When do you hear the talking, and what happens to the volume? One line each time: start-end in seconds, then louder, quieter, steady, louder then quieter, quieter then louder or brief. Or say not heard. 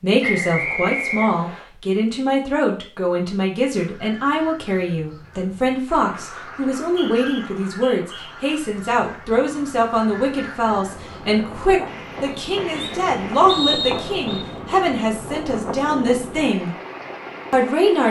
0.0-16.8 steady
17.5-18.0 brief.